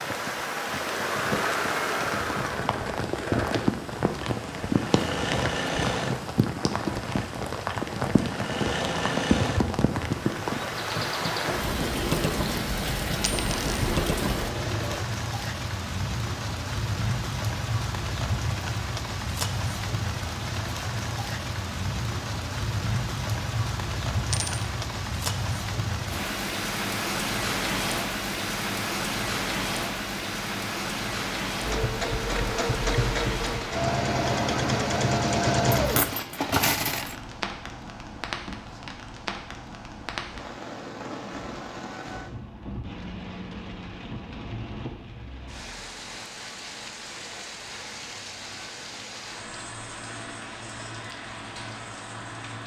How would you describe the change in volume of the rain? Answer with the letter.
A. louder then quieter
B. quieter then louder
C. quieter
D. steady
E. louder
C.